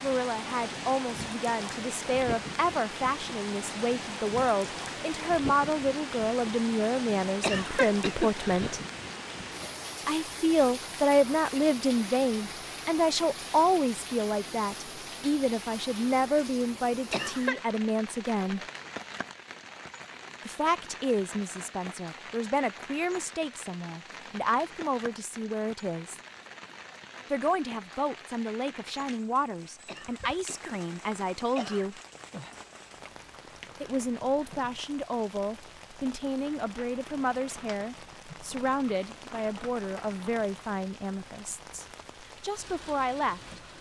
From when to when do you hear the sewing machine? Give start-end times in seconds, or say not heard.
not heard.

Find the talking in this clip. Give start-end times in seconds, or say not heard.
0.0-8.8, 10.1-18.6, 20.4-26.2, 27.3-32.0, 33.8-43.7.